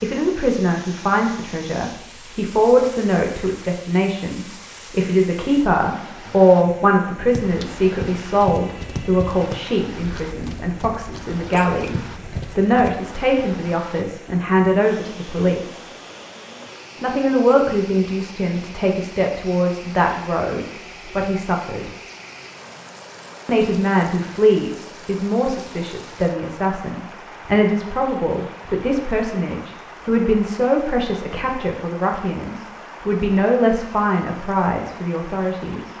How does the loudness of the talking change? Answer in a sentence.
The loudness of the talking stays about the same.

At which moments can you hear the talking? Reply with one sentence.
You can hear the talking from 0.0 to 15.8 s, from 17.0 to 21.9 s and from 23.4 to 35.9 s.